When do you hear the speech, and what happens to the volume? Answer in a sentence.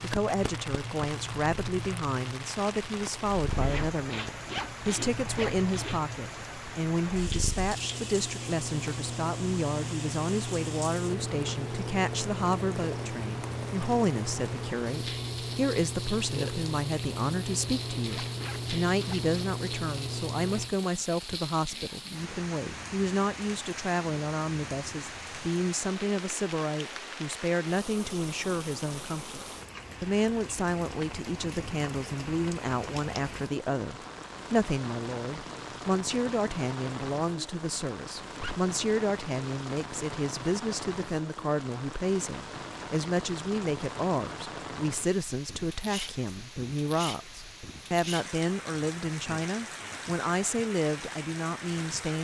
You can hear the speech from 0.0 to 52.1 s, at a steady volume.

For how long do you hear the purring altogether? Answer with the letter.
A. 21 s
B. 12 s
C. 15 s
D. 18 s
A.